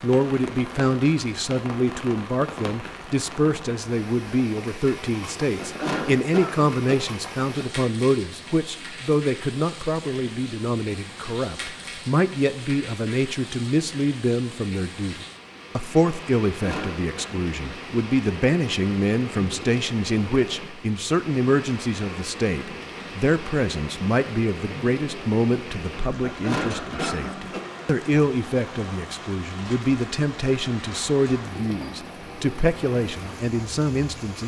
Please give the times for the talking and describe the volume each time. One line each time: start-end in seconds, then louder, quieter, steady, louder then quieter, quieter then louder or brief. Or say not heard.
0.0-34.4 steady.